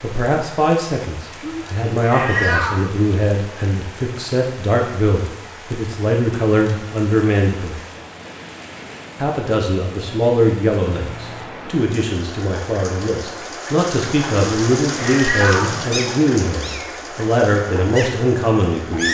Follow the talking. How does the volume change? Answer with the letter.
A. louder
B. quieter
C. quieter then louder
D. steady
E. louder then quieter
D.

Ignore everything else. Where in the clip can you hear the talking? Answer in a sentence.
You can hear the talking from 0.0 to 7.8 s and from 9.2 to 19.0 s.